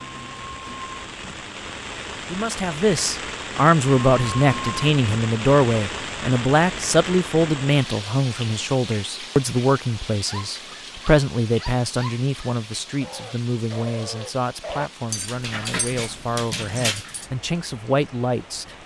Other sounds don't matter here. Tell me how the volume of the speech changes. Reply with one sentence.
The loudness of the speech goes down.